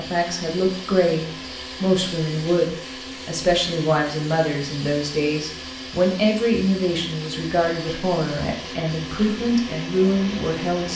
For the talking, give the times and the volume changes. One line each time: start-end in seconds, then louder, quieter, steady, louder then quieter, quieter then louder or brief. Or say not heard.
0.0-10.9 steady.